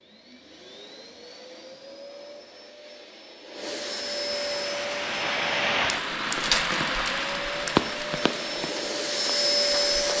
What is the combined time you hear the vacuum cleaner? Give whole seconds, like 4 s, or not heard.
10 s.